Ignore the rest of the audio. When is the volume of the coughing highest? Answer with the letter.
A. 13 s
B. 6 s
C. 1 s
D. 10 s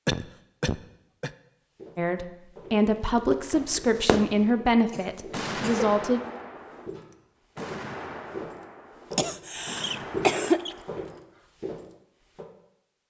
D.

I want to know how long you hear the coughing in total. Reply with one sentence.
You can hear the coughing for 4 seconds altogether.